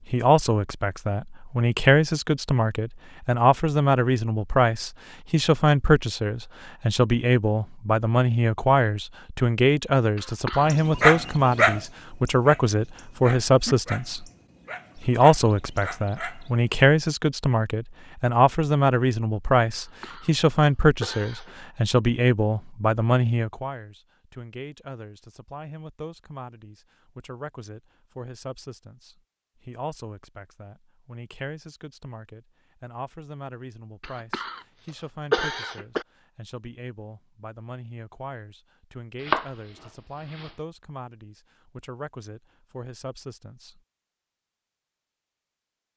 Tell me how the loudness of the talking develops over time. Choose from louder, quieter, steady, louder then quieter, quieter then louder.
quieter.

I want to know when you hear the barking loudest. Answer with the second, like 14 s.
11 s.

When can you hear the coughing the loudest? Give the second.
35 s.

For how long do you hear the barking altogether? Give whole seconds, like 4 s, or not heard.
6 s.